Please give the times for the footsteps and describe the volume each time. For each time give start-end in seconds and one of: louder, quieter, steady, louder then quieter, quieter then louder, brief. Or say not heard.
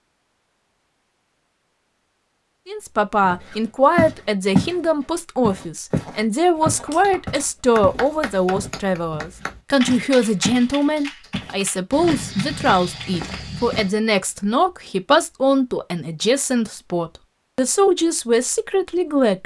3.2-4.8 brief
5.4-10.7 quieter
11.3-13.9 brief.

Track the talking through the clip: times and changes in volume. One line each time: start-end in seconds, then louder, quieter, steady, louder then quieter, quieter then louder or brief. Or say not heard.
2.6-19.4 steady.